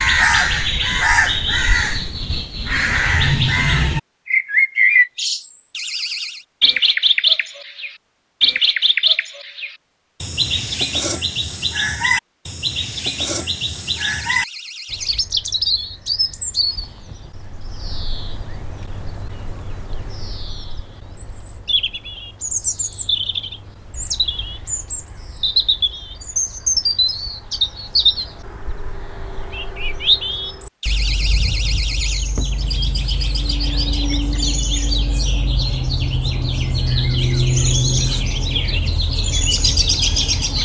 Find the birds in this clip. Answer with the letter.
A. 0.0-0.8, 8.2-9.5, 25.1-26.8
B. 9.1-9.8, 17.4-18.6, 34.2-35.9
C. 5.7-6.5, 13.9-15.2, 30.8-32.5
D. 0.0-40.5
D.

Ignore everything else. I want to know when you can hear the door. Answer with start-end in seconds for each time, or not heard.
5.7-6.5, 13.9-15.2, 30.8-32.5.